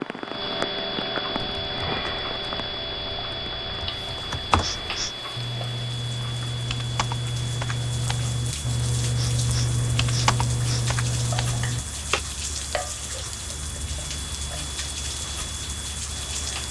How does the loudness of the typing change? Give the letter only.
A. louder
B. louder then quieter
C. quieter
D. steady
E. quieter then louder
A.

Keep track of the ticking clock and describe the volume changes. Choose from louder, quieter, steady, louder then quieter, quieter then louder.
quieter.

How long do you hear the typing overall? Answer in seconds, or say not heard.
11 s.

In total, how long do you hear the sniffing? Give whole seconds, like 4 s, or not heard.
2 s.